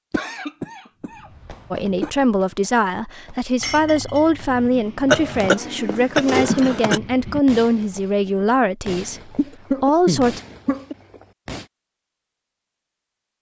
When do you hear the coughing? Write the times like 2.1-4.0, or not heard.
0.1-2.1, 5.0-7.0, 9.3-10.9.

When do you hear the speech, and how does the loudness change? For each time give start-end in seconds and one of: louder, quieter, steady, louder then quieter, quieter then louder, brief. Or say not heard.
1.7-10.4 steady.